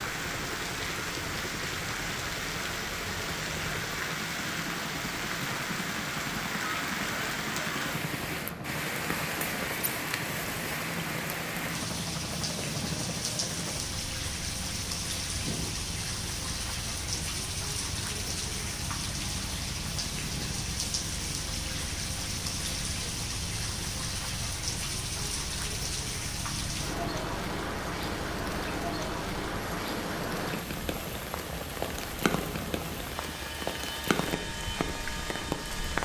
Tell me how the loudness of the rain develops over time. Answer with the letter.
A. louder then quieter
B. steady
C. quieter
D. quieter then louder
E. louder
B.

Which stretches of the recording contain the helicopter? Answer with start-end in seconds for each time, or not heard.
0.0-36.0.